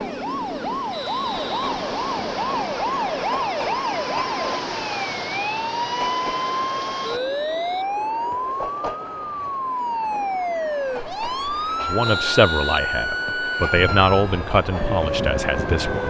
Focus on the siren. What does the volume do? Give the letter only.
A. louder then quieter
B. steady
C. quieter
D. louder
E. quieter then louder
B.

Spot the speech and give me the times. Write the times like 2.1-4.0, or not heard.
11.8-16.0.